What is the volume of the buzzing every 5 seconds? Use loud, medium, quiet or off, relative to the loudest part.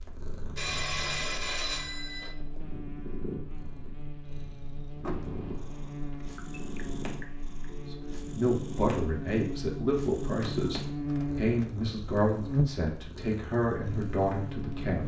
quiet, medium, loud.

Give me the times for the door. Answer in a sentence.
The door can be heard from 5.0 to 5.9 s.